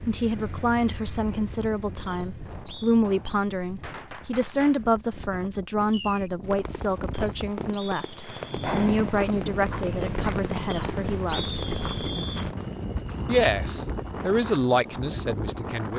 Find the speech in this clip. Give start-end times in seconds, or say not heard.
0.0-11.6, 13.2-15.9.